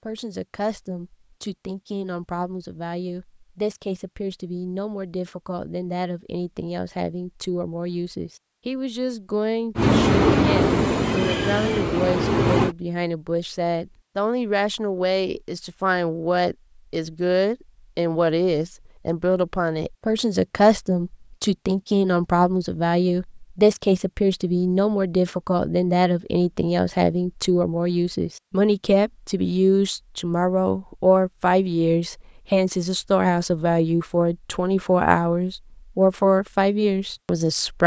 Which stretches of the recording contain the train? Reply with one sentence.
The train can be heard from 9.8 to 12.8 s.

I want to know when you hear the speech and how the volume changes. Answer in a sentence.
You can hear the speech from 0.1 to 37.8 s, getting louder.